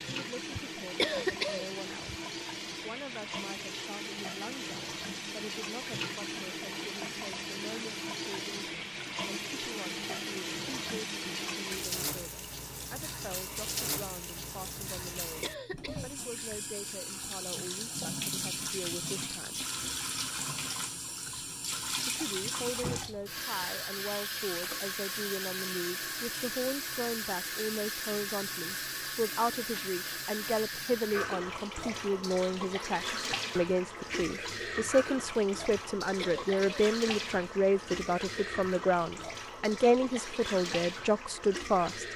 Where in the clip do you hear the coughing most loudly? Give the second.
1 s.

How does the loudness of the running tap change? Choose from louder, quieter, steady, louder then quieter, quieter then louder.
steady.